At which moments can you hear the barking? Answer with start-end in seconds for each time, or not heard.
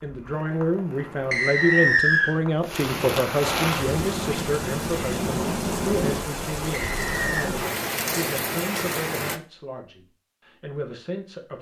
not heard.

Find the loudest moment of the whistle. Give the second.
2 s.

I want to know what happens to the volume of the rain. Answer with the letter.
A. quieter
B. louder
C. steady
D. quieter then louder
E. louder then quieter
B.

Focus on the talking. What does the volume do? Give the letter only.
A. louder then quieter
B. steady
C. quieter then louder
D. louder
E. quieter
E.